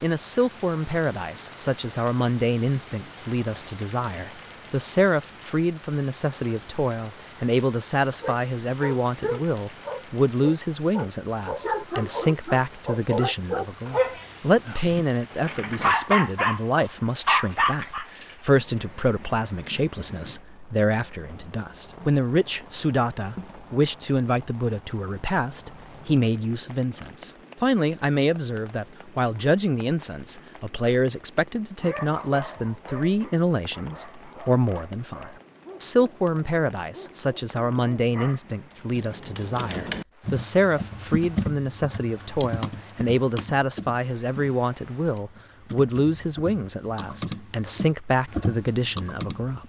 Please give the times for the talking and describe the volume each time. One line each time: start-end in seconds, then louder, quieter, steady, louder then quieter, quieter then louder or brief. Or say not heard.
0.0-49.6 steady.